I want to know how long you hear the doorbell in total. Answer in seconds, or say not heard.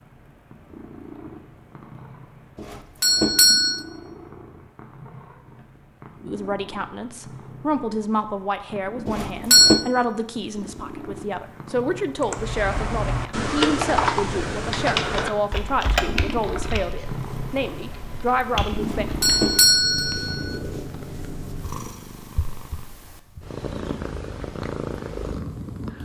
4 s.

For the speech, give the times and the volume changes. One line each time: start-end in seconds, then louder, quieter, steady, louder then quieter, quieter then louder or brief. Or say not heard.
6.2-19.1 steady.